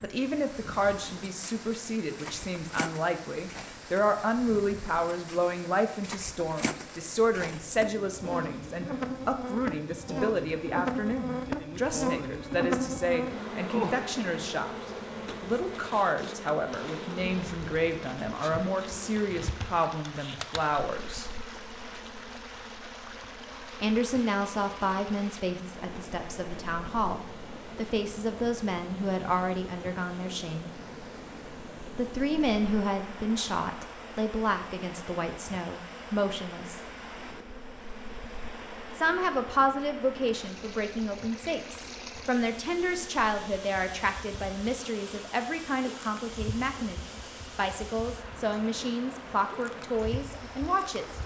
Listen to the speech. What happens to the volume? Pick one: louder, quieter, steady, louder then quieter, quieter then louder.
steady.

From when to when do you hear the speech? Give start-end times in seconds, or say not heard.
0.0-21.2, 23.8-30.7, 31.9-36.8, 39.0-51.1.